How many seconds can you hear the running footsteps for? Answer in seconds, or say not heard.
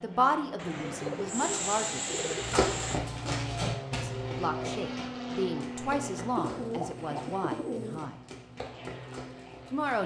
8 s.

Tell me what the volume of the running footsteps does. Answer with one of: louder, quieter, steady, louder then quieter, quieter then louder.
quieter then louder.